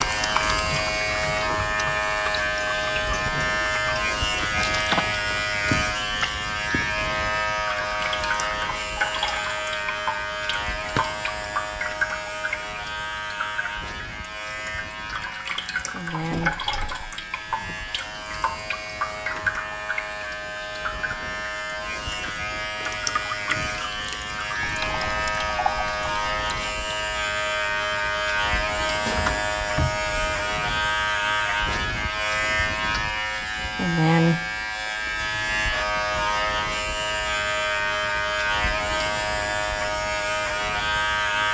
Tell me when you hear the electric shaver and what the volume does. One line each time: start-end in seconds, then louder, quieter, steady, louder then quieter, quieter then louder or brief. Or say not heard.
0.0-41.4 quieter then louder.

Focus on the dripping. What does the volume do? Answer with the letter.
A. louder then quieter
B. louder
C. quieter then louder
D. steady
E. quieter
D.